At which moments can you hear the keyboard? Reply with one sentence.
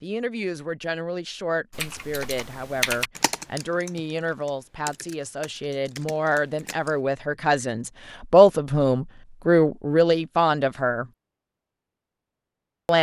The keyboard can be heard from 1.7 to 7.0 s.